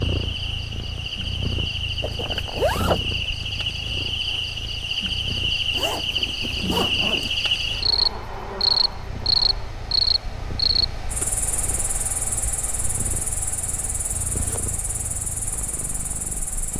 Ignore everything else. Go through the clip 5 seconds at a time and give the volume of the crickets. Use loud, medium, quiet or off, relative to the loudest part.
medium, loud, medium, quiet.